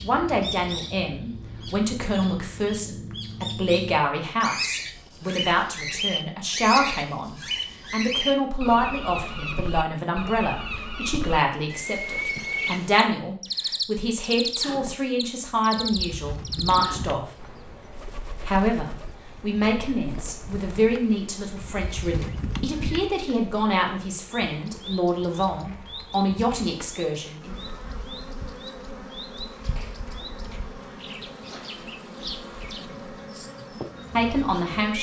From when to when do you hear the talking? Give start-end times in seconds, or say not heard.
0.0-17.3, 18.4-27.6, 34.1-34.9.